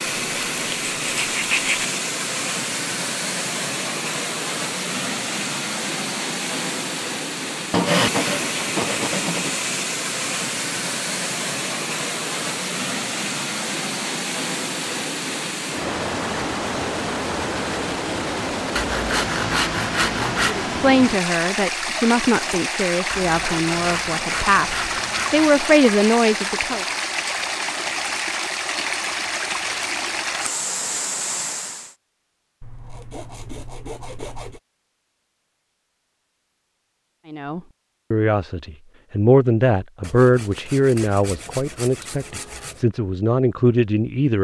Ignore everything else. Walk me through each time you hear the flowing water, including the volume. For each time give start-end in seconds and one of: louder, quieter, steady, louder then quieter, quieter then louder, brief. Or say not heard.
0.0-31.9 steady.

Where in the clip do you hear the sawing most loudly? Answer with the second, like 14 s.
8 s.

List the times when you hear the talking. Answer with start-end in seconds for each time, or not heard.
20.4-26.9, 37.3-44.3.